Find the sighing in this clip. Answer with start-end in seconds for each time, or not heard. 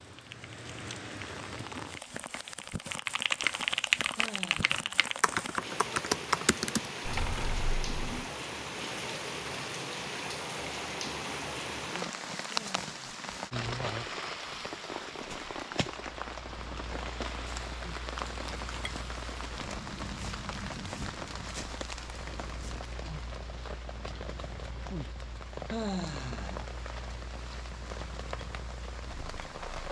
4.2-5.2, 12.4-13.2, 25.7-26.6.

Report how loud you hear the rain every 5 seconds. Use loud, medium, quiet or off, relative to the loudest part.
medium, loud, loud, loud, medium, medium.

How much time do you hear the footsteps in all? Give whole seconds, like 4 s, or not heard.
not heard.